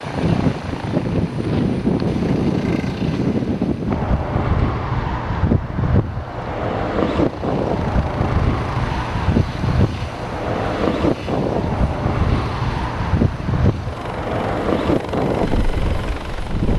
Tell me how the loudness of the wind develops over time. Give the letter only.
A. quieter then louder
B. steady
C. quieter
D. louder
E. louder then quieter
B.